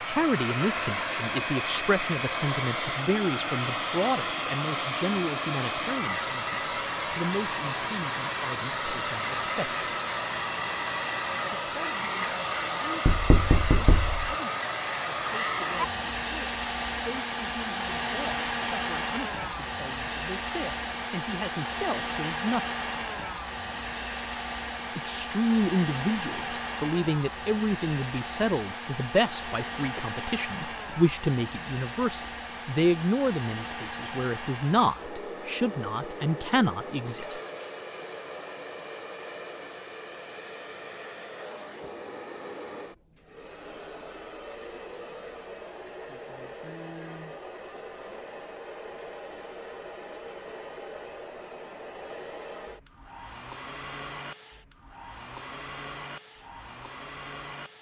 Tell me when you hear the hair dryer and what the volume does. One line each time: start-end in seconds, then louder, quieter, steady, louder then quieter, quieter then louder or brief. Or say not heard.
0.0-57.7 quieter.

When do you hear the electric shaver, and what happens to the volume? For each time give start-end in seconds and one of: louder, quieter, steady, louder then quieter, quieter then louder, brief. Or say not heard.
not heard.